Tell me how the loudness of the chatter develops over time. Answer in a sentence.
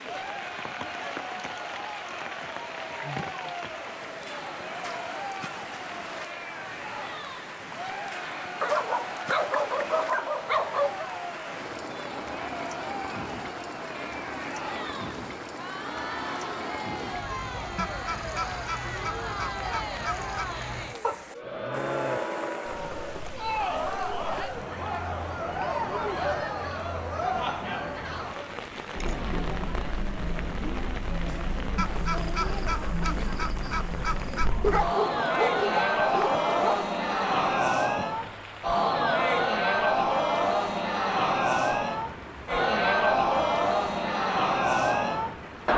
The loudness of the chatter goes up.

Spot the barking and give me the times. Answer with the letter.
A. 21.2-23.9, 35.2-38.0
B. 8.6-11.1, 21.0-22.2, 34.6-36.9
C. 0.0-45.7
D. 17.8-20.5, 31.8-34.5
B.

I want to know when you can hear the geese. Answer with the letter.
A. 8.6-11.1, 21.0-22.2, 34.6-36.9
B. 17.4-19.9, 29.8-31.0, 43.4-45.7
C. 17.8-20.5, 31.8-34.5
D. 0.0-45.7
C.